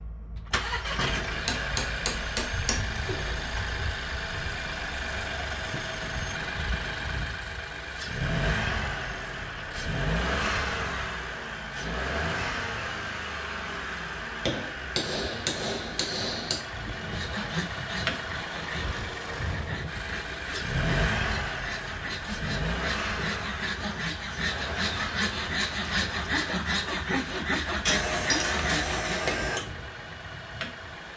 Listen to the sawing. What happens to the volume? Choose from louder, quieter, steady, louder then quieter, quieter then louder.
louder.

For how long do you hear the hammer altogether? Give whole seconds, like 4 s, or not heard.
6 s.